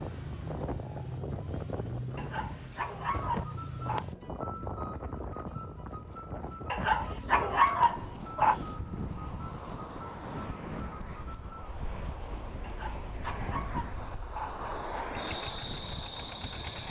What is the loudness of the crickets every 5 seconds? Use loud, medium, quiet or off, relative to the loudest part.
loud, loud, medium, medium.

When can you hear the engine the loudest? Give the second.
2 s.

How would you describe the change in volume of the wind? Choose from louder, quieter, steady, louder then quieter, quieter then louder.
steady.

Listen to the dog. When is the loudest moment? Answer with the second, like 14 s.
8 s.